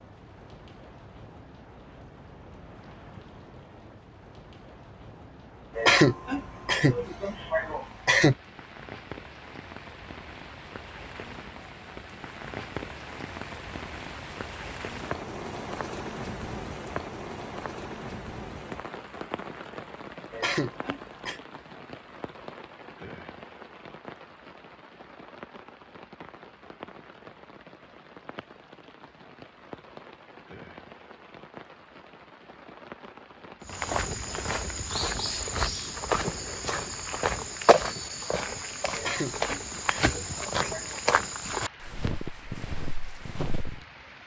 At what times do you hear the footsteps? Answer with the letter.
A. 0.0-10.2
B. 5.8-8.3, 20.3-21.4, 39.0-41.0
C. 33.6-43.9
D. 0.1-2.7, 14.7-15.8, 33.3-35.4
C.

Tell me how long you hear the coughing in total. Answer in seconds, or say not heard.
6 s.